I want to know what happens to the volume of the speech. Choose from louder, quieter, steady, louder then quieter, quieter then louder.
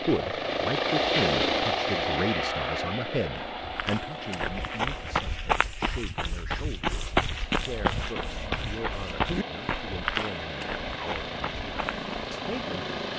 quieter.